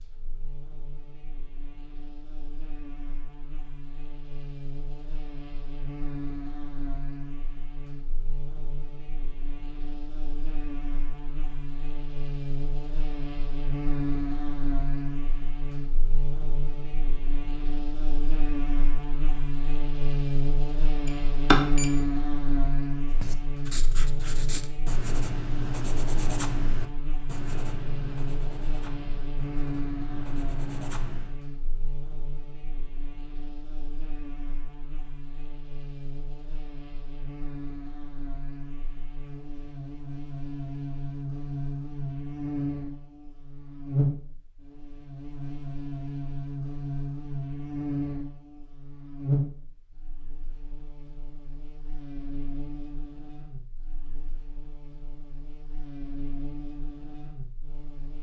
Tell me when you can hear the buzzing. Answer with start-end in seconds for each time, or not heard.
0.0-58.1.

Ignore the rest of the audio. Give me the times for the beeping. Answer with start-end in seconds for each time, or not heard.
21.1-21.9.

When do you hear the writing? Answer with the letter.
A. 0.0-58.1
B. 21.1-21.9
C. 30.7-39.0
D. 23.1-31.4
D.